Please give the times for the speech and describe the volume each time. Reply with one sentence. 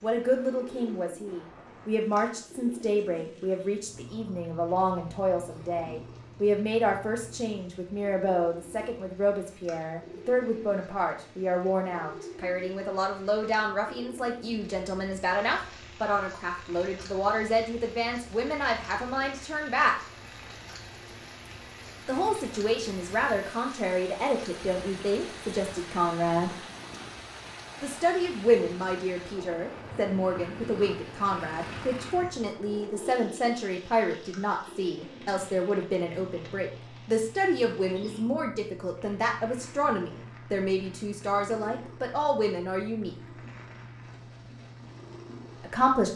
You can hear the speech from 0.0 to 19.9 s, at a steady volume; from 22.1 to 26.6 s, at a steady volume; from 27.8 to 43.1 s, at a steady volume; and briefly from 45.6 to 46.1 s.